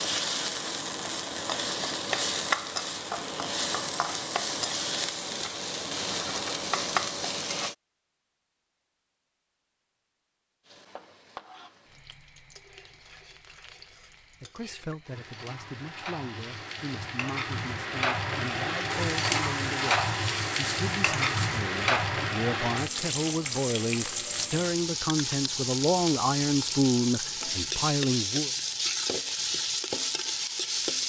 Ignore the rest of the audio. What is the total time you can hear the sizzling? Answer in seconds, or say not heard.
28 s.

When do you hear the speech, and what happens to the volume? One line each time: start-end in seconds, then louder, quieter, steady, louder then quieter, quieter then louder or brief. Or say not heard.
14.4-28.5 louder.